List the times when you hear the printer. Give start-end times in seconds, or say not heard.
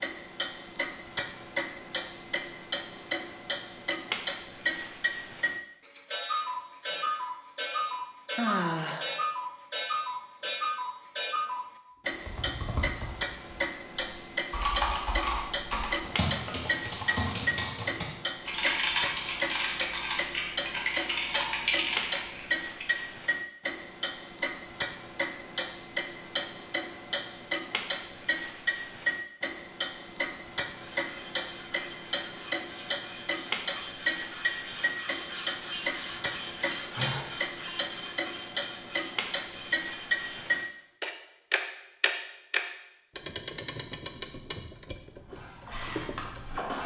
30.8-40.6, 45.2-46.8.